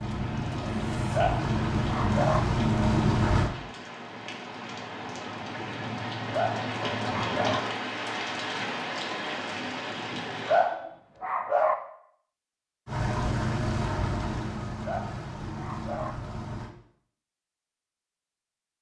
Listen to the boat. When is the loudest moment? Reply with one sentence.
The loudest moment of the boat is at 3 seconds.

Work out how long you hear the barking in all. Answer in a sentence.
You can hear the barking for 5 seconds altogether.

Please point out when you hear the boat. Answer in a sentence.
The boat can be heard from 0.0 to 3.5 s and from 12.8 to 16.8 s.